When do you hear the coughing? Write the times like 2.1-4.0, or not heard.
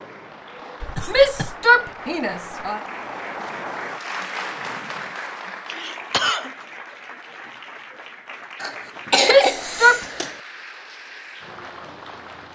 0.8-1.6, 5.7-6.5, 8.6-10.3.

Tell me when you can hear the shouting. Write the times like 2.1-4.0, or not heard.
1.1-2.8, 9.2-10.0.